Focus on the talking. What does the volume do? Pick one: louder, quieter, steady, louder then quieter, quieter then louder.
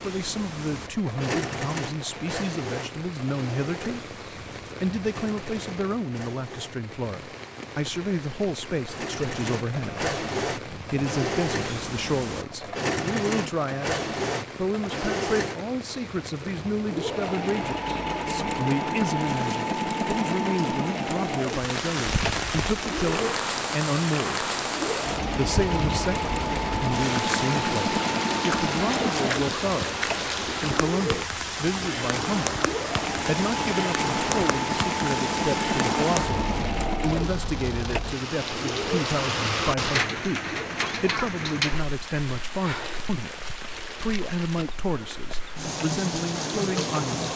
steady.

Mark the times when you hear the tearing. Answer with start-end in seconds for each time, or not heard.
not heard.